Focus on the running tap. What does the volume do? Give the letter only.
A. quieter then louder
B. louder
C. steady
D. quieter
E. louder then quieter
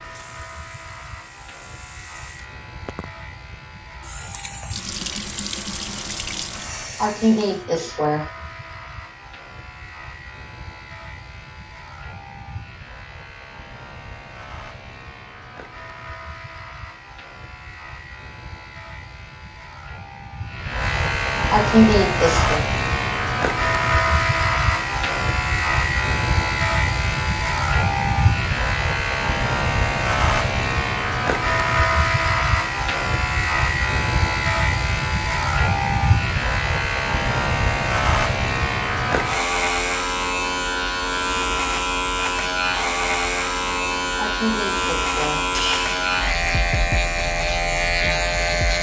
B.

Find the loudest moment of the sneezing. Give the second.
22 s.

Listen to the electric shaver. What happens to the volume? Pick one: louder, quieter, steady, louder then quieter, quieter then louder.
louder.